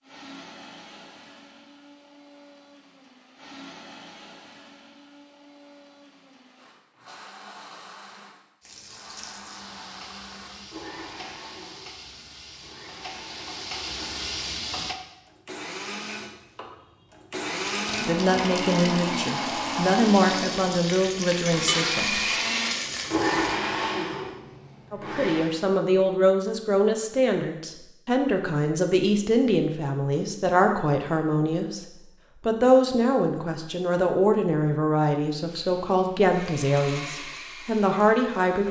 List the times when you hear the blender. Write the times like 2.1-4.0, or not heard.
0.0-25.5, 35.6-38.6.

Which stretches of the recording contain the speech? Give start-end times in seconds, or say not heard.
18.0-22.2, 24.9-31.8, 32.5-38.6.